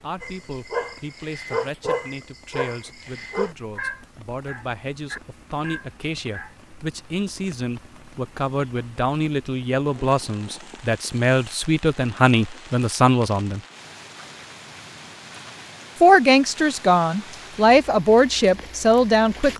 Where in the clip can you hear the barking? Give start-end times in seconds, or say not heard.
0.2-6.5.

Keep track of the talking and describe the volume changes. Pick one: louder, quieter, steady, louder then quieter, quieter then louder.
louder.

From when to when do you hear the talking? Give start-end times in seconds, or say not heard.
0.0-13.6, 16.0-19.5.